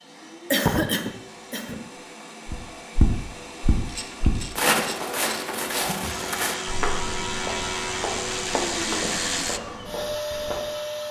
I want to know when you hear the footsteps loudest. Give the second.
5 s.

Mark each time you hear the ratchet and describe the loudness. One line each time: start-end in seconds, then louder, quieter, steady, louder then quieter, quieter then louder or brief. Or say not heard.
3.8-9.6 louder.